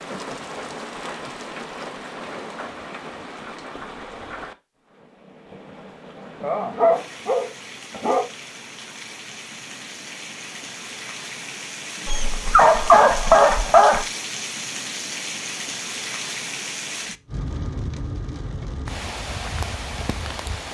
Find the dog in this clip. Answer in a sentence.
You can hear the dog from 6.4 to 8.2 s and from 12.1 to 14.1 s.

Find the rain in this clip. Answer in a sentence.
The rain can be heard from 0.0 to 20.7 s.